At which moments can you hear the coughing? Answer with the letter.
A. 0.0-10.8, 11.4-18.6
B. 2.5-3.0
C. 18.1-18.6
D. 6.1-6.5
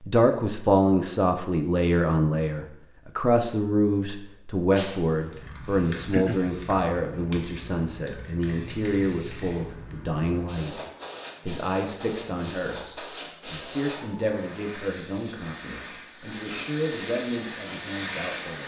D.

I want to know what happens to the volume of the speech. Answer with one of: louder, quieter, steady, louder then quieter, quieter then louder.
quieter.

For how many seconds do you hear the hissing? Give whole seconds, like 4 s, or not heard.
14 s.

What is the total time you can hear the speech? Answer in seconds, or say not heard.
18 s.